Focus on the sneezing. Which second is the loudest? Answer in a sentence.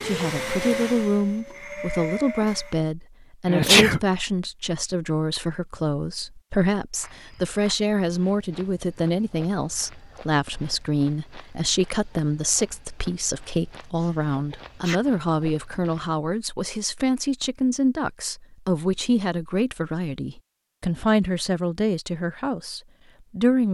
The volume of the sneezing peaks at 4 seconds.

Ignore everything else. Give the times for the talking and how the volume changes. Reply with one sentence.
The talking can be heard from 0.0 to 23.7 s, at a steady volume.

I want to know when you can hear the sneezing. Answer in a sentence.
You can hear the sneezing from 3.5 to 4.0 s and from 14.0 to 15.0 s.